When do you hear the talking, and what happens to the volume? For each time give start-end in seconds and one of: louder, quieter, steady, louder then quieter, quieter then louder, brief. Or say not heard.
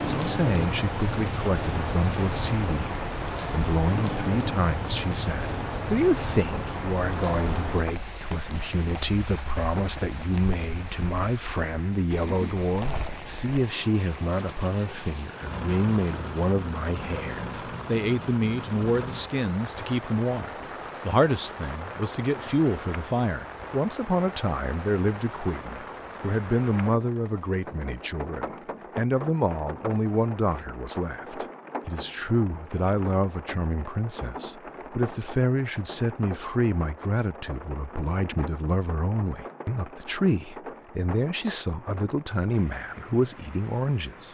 0.1-44.2 steady.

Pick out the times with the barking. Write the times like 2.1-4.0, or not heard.
not heard.